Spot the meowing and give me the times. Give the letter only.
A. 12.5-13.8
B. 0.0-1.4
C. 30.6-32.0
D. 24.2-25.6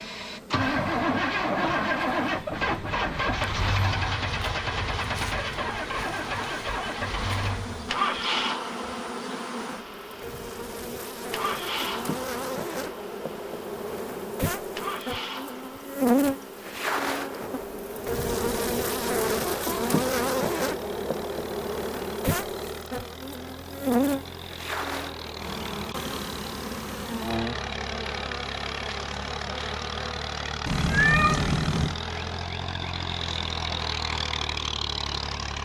C.